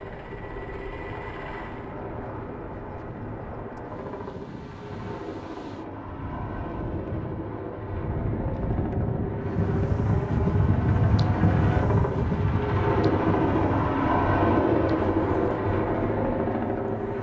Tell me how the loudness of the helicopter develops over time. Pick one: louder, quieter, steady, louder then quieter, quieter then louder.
louder.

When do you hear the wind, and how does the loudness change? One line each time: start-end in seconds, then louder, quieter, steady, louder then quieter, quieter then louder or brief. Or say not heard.
0.0-17.1 louder then quieter.